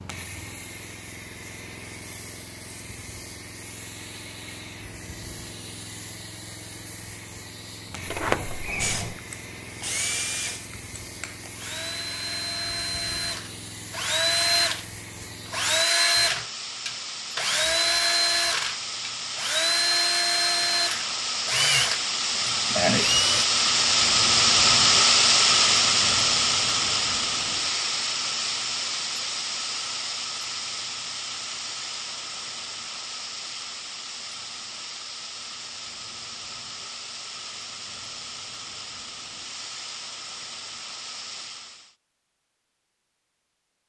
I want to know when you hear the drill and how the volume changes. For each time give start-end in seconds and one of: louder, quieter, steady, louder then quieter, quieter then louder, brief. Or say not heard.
8.8-23.4 louder.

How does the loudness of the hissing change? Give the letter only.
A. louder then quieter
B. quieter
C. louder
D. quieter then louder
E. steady
A.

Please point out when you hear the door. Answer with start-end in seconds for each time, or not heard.
8.1-9.2.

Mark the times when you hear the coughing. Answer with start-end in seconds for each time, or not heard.
not heard.